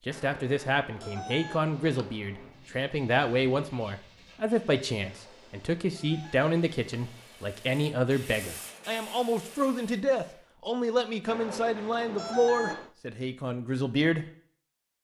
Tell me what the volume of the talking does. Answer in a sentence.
The volume of the talking stays about the same.